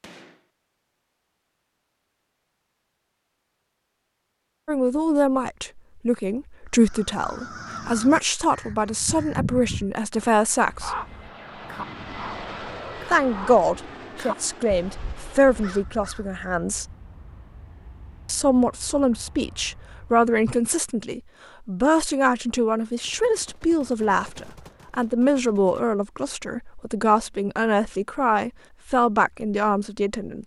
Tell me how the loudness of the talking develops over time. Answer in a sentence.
The volume of the talking stays about the same.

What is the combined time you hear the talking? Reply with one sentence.
You can hear the talking for 22 seconds altogether.